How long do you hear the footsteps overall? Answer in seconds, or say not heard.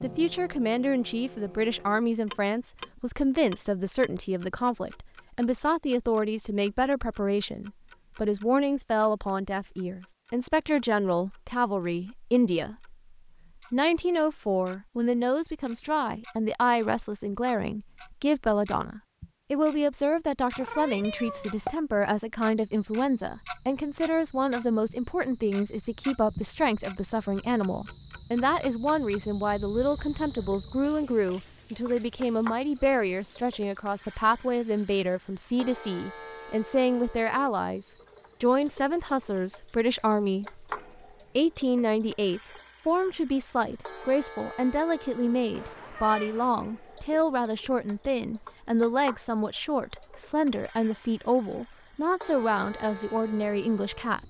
not heard.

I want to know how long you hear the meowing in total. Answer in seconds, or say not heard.
2 s.